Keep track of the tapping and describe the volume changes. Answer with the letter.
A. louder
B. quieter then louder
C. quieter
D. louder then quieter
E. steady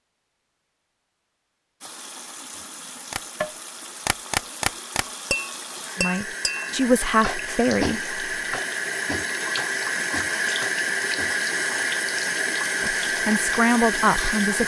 C.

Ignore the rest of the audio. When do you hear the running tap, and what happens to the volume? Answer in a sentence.
You can hear the running tap from 1.8 to 14.6 s, getting louder.